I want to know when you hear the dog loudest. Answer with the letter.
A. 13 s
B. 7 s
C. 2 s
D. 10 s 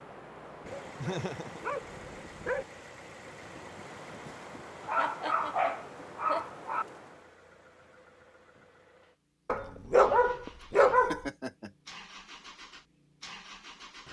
D.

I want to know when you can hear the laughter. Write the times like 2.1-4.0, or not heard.
1.0-1.6, 5.0-6.5, 10.9-11.7.